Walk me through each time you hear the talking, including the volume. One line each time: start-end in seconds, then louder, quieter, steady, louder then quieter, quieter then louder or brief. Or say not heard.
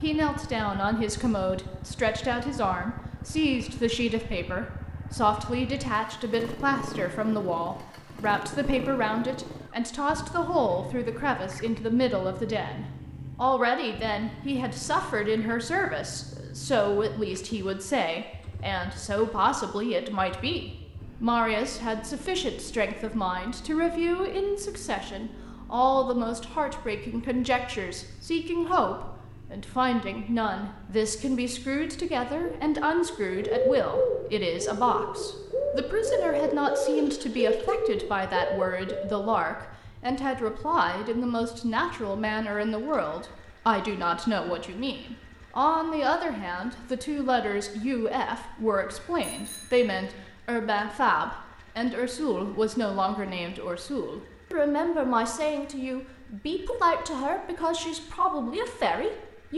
0.0-59.5 steady.